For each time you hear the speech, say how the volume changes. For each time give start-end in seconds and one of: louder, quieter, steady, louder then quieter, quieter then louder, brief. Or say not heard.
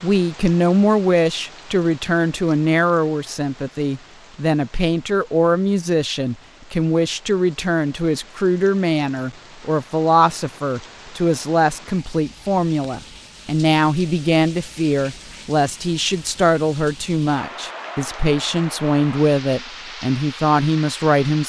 0.0-21.4 steady.